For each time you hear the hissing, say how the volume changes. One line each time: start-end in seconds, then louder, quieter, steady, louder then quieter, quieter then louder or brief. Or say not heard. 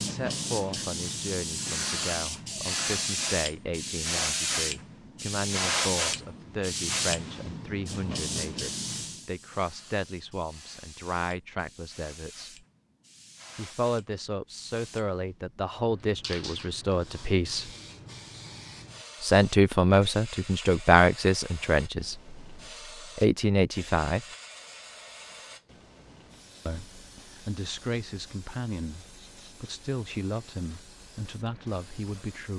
0.0-32.5 quieter.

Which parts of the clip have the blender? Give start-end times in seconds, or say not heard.
not heard.